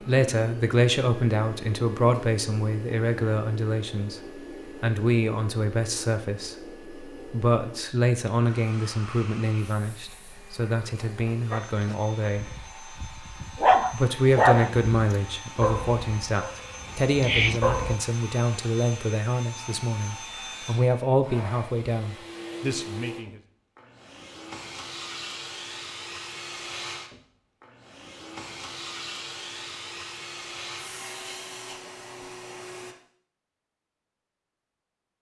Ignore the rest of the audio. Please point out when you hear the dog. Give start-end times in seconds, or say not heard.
11.5-18.0.